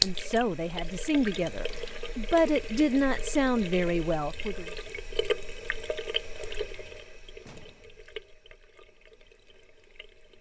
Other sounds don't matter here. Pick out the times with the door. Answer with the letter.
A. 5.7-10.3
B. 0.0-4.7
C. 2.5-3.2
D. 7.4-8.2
D.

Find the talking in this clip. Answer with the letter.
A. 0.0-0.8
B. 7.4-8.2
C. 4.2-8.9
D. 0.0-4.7
D.